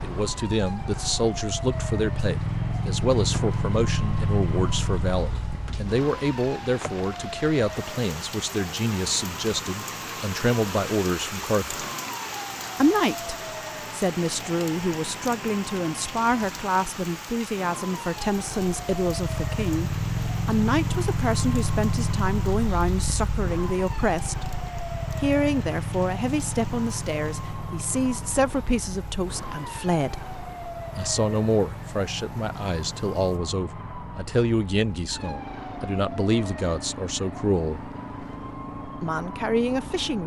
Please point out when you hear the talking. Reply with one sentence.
You can hear the talking from 0.0 to 11.8 s, from 12.8 to 24.4 s, from 25.2 to 30.4 s, from 30.9 to 37.8 s and from 39.0 to 40.2 s.